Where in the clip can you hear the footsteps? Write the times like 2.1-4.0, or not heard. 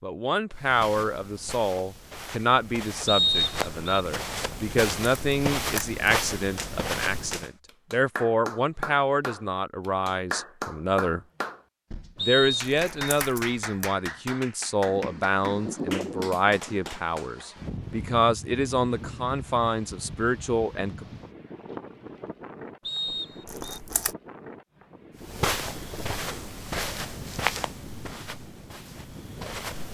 0.6-7.5, 25.1-29.8.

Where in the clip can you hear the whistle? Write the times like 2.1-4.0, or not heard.
3.0-4.0, 12.2-13.2, 22.9-23.8.